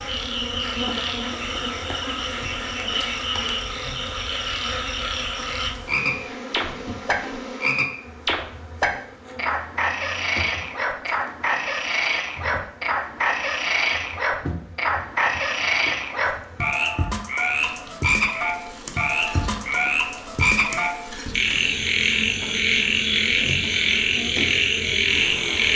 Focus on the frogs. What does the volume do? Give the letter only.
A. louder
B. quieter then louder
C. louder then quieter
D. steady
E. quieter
A.